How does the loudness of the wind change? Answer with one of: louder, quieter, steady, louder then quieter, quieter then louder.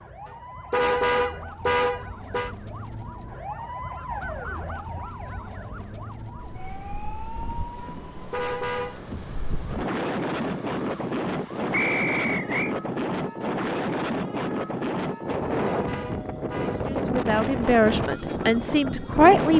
louder.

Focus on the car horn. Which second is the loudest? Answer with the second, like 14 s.
1 s.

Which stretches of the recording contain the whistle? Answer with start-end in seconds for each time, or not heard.
11.7-12.8.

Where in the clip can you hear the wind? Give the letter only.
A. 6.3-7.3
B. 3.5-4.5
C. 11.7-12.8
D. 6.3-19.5
D.